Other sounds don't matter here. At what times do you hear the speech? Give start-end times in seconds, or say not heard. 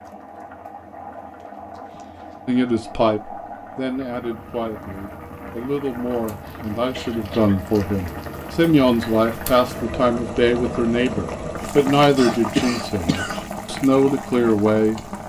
2.5-15.0.